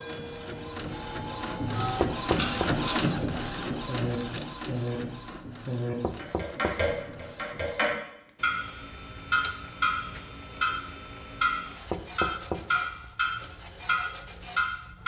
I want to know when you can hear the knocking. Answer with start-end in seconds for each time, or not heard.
2.0-2.7, 6.0-7.2, 11.9-13.1.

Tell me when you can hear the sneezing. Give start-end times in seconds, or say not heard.
not heard.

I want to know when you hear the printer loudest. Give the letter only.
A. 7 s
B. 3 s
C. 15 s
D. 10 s
B.